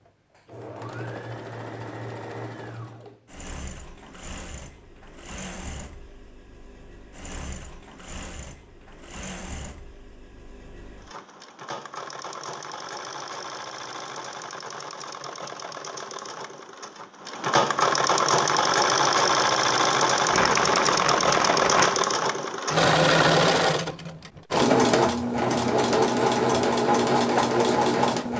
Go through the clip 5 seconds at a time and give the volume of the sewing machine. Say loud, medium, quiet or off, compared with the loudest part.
quiet, quiet, quiet, loud, loud, loud.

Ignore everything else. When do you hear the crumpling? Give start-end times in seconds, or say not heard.
20.3-22.1.